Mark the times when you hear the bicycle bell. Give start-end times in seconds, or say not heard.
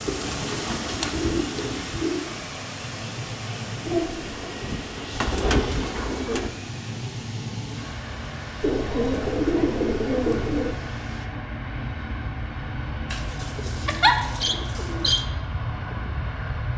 not heard.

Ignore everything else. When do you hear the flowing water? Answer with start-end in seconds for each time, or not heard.
0.0-11.3.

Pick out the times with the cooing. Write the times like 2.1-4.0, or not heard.
0.1-2.2, 4.6-6.5, 8.6-10.8, 13.1-15.2.